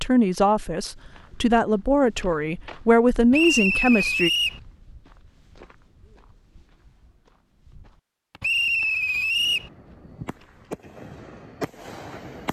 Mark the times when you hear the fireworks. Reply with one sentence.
You can hear the fireworks from 9.3 to 12.4 s.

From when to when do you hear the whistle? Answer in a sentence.
You can hear the whistle from 3.3 to 4.6 s and from 8.4 to 9.7 s.